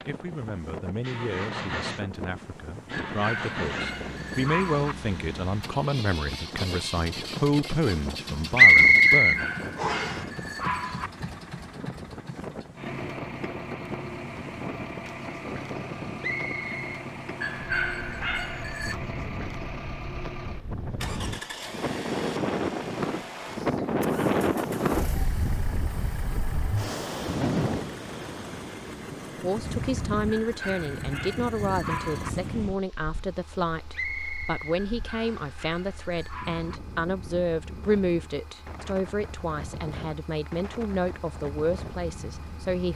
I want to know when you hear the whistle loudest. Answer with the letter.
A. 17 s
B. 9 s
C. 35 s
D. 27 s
B.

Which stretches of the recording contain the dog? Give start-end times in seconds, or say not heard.
2.9-5.0, 9.2-11.1, 17.4-19.0, 30.3-32.3, 34.8-36.8.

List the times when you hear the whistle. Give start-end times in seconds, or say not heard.
8.6-10.2, 16.2-17.1, 33.9-35.5.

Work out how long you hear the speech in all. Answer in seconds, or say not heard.
23 s.